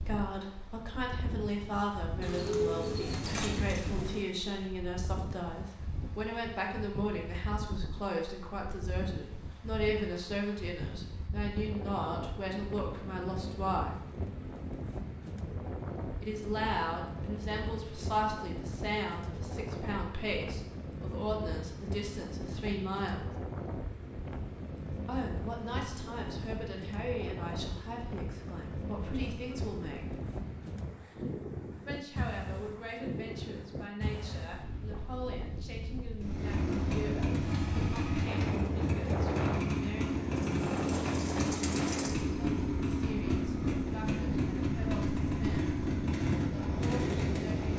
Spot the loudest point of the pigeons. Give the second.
3 s.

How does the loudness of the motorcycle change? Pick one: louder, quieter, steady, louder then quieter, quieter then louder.
steady.